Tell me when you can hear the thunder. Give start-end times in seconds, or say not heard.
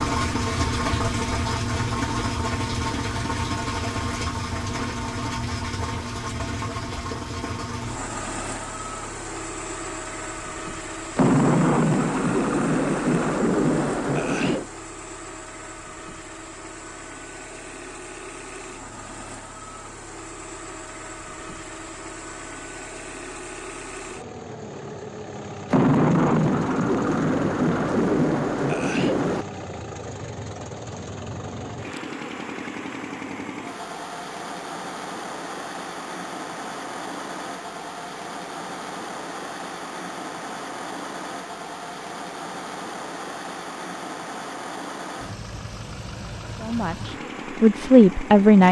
11.2-14.7, 25.7-29.4.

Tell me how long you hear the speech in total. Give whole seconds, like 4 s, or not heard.
2 s.